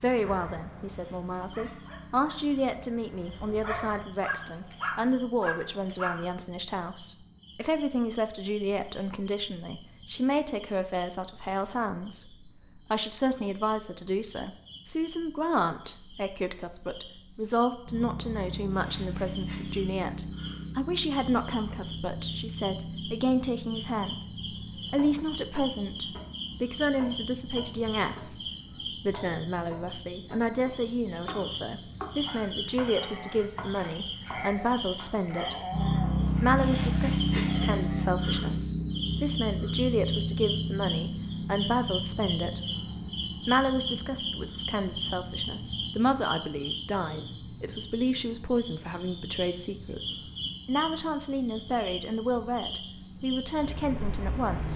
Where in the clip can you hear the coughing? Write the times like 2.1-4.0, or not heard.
not heard.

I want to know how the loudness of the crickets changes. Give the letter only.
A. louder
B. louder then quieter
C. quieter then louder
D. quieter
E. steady
B.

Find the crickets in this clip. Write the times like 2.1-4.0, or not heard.
0.0-54.7.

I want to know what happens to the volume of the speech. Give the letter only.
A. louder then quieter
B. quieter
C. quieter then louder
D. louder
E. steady
E.